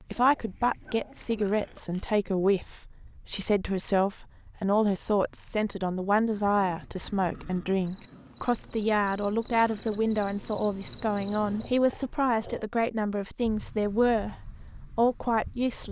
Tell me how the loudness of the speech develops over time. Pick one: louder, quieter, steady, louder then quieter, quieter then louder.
steady.